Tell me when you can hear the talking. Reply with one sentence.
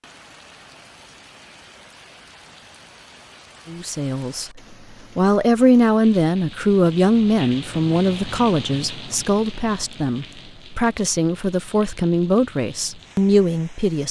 You can hear the talking from 3.6 to 14.0 s.